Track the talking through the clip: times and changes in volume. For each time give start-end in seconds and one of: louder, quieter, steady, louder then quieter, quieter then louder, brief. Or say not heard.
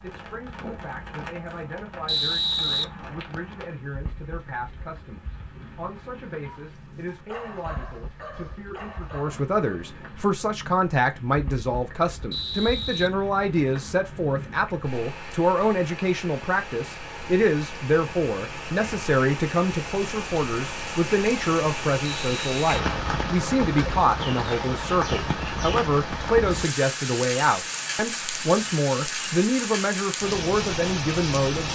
0.0-31.6 louder.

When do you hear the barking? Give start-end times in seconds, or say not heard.
6.4-9.9.